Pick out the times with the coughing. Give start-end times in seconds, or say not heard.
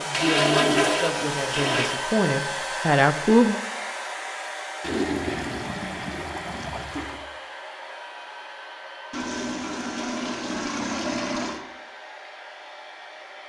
not heard.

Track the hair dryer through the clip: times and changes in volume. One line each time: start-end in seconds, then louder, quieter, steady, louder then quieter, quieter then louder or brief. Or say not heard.
0.0-13.4 quieter.